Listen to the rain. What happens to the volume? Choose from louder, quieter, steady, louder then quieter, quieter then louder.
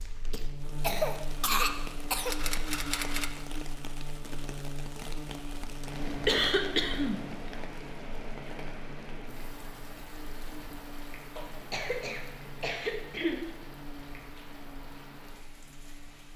quieter.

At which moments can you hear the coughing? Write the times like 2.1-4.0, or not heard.
0.3-2.4, 6.2-7.2, 11.3-13.5.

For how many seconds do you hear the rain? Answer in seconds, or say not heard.
16 s.